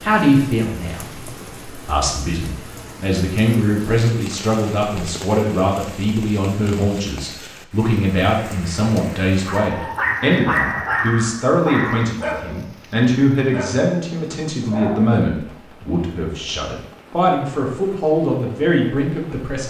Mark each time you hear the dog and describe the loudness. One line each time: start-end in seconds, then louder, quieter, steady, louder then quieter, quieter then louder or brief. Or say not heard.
9.4-15.2 quieter.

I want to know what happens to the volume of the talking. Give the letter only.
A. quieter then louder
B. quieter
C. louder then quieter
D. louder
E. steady
E.